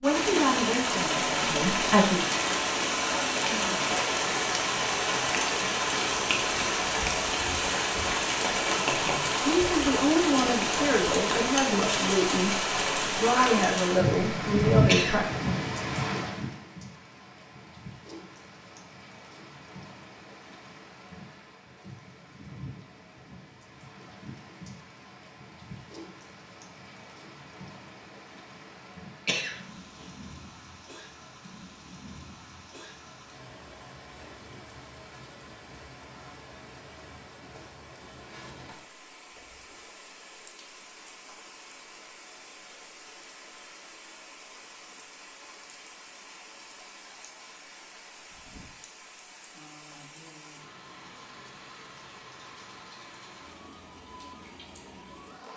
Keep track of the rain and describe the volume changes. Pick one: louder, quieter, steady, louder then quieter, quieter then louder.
quieter.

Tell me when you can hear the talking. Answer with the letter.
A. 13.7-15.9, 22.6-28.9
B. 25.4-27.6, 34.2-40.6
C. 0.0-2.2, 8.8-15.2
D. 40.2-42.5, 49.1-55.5
C.